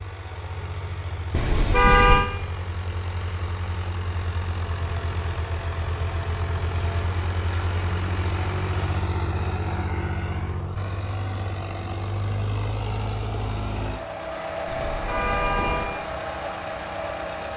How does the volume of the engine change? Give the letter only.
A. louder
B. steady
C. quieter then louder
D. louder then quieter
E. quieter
A.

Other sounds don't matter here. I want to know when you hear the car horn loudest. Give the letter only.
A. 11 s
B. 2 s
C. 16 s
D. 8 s
B.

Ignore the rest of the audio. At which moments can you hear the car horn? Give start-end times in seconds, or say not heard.
1.3-2.2, 14.7-16.0.